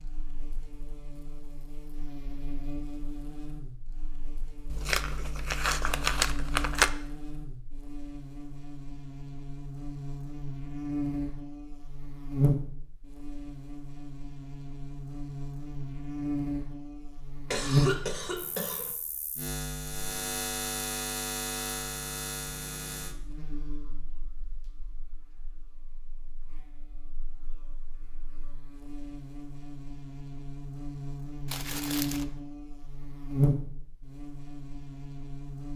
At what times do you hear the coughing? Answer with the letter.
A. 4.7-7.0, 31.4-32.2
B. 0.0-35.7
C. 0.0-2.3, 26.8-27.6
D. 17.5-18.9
D.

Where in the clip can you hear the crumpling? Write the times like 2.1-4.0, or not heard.
4.7-7.0, 31.4-32.2.